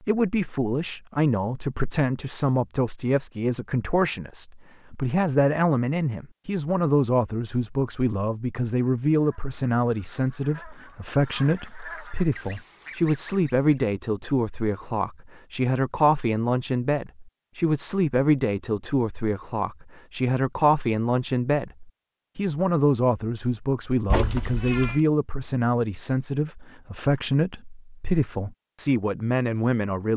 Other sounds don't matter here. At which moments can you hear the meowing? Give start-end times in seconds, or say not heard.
24.1-25.0.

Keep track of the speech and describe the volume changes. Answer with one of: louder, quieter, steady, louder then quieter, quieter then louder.
steady.